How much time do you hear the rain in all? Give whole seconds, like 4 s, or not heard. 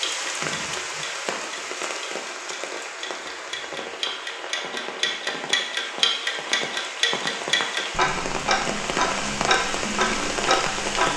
11 s.